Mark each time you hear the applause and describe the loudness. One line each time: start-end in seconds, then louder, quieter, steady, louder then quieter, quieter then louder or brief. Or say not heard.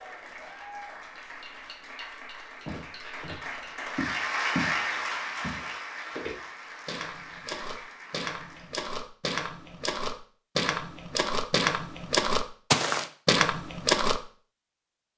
0.0-8.8 louder then quieter.